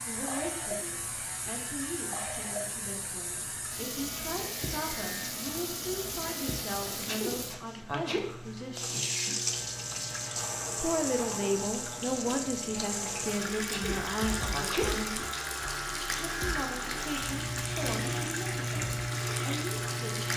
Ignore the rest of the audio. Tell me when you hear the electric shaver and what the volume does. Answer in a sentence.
You can hear the electric shaver from 0.0 to 20.3 s, getting louder.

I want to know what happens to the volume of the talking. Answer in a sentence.
The volume of the talking goes up, then down.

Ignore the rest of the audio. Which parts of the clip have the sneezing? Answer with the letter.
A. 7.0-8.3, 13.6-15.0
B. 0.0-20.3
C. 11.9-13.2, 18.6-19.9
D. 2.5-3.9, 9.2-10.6
A.